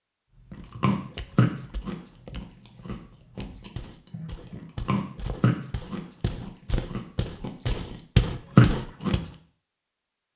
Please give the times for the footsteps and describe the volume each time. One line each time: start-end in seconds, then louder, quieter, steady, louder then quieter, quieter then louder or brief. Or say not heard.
0.3-9.2 louder.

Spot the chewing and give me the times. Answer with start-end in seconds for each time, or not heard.
0.5-8.0, 8.6-9.2.